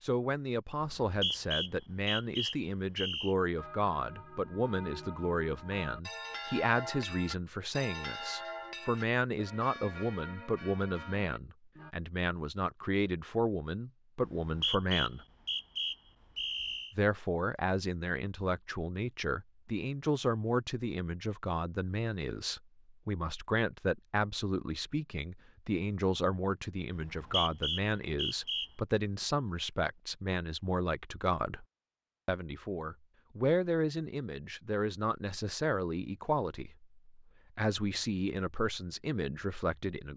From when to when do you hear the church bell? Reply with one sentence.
You can hear the church bell from 3.5 to 11.9 s.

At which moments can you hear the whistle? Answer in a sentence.
The whistle can be heard from 0.8 to 3.4 s, from 14.2 to 16.9 s and from 26.9 to 28.7 s.